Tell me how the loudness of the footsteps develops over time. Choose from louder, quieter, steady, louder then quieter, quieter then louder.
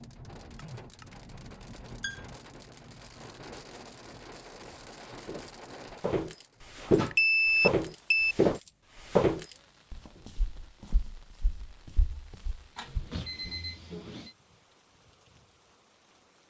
quieter.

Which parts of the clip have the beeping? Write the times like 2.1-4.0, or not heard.
0.6-2.2, 7.1-8.3, 12.8-14.3.